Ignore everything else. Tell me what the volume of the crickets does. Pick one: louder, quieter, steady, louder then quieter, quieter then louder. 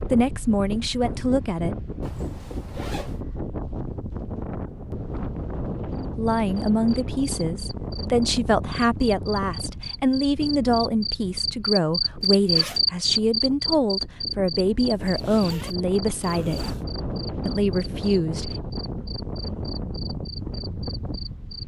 louder then quieter.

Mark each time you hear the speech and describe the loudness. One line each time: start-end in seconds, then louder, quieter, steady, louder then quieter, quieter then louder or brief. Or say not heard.
0.1-1.8 brief
6.2-16.7 steady
17.4-18.6 brief.